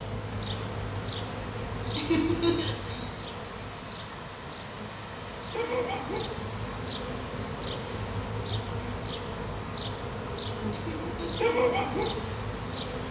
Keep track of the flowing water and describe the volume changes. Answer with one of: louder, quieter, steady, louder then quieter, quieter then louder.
steady.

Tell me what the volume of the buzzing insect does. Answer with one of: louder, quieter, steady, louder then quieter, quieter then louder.
quieter then louder.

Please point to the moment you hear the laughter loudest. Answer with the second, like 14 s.
2 s.